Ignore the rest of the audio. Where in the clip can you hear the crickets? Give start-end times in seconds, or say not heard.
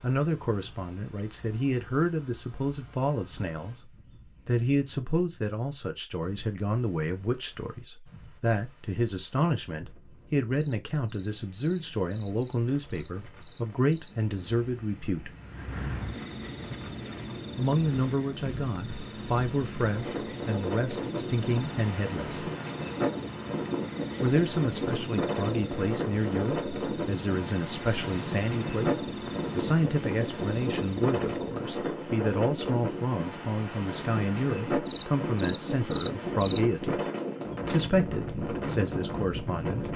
0.0-39.9.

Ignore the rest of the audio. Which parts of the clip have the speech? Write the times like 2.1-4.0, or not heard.
0.0-15.3, 17.6-22.4, 24.2-28.9, 29.6-37.0, 37.7-39.9.